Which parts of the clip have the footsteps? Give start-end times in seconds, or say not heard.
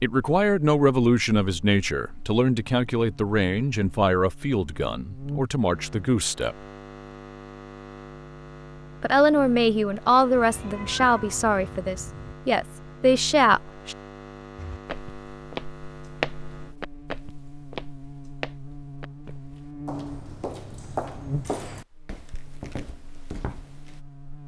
14.6-24.0.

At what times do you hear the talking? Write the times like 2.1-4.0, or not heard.
0.0-6.5, 9.0-13.9.